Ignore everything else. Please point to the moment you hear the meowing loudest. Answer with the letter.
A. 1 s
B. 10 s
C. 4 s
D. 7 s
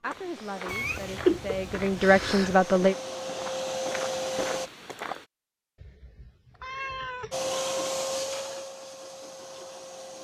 A.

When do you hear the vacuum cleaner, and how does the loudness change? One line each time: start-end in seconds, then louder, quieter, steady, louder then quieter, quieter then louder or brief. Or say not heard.
0.2-4.7 louder
7.3-10.1 brief.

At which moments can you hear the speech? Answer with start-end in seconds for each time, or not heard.
0.0-3.0.